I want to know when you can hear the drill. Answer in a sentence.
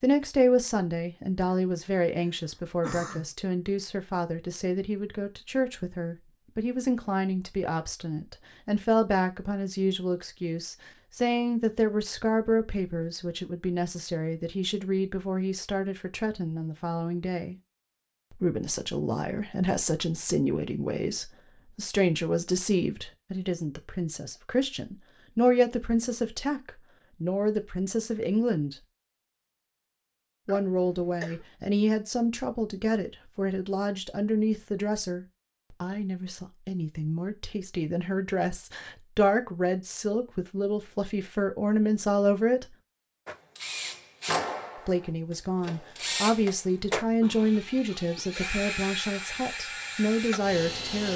The drill can be heard from 43.2 to 51.1 s.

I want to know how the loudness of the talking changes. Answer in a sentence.
The volume of the talking stays about the same.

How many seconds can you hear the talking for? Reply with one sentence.
You can hear the talking for 47 seconds altogether.